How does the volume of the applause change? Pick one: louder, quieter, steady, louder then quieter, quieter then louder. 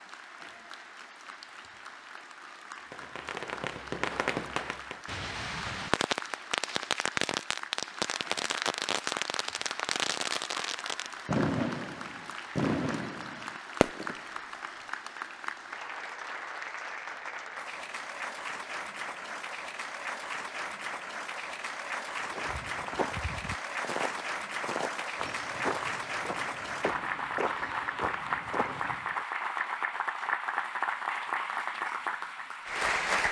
louder.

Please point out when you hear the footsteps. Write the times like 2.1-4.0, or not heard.
22.2-29.2.